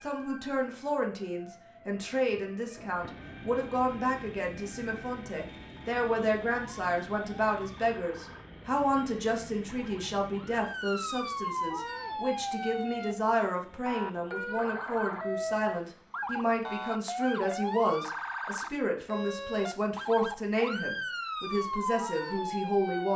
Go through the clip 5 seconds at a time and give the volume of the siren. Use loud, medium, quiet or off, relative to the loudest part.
quiet, quiet, loud, loud, loud.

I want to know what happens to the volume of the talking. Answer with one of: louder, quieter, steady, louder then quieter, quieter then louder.
steady.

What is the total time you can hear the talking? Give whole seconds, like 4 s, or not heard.
23 s.